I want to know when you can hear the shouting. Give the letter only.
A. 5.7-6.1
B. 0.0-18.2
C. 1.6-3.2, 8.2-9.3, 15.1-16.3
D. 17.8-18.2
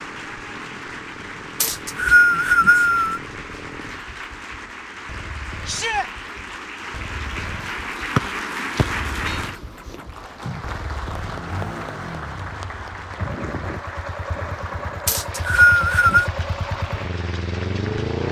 A.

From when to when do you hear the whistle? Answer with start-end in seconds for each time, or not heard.
1.6-3.2, 8.2-9.3, 15.1-16.3.